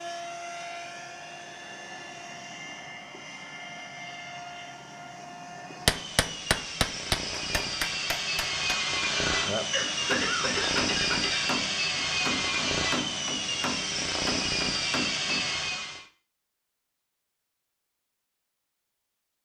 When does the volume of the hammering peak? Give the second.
6 s.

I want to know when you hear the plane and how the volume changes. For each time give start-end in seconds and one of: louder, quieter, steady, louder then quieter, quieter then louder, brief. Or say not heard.
0.0-16.1 louder.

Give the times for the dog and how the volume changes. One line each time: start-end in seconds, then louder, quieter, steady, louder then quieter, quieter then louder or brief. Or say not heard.
not heard.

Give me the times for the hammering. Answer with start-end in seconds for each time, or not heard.
5.8-15.5.